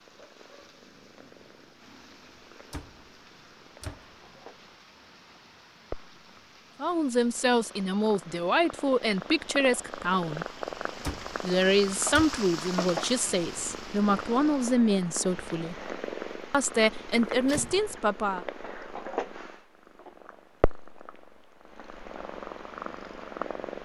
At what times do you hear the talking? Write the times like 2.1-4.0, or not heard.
6.8-10.4, 11.4-15.8, 16.5-18.4.